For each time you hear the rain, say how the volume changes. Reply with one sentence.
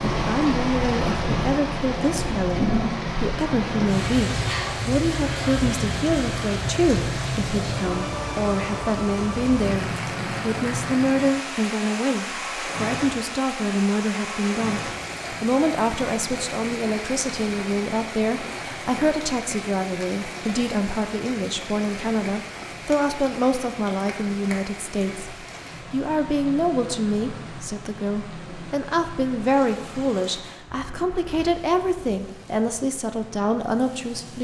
The rain can be heard from 0.0 to 34.4 s, getting quieter.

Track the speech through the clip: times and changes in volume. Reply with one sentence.
The speech can be heard from 0.1 to 34.4 s, at a steady volume.